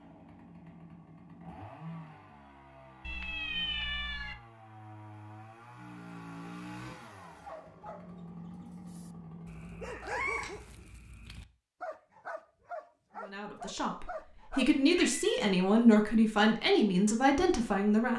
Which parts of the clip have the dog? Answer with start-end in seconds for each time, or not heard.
7.3-14.7.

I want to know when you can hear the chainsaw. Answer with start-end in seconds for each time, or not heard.
0.0-9.9.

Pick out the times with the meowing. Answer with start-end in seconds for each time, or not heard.
3.0-4.3, 10.0-10.6, 14.9-15.4.